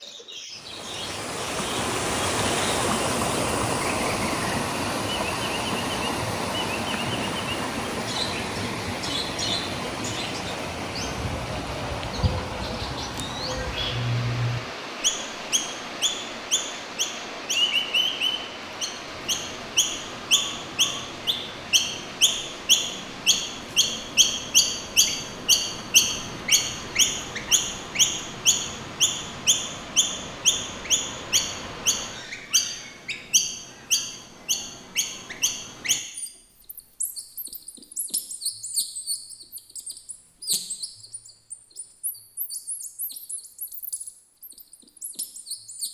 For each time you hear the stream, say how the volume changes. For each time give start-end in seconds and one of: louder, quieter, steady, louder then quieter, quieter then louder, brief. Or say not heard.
0.0-32.3 quieter.